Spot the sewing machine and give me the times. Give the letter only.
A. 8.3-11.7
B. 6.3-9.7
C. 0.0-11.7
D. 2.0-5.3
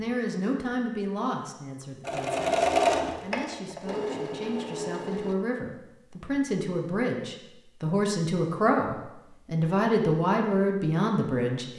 D.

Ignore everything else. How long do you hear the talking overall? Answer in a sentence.
The talking can be heard for 12 seconds in total.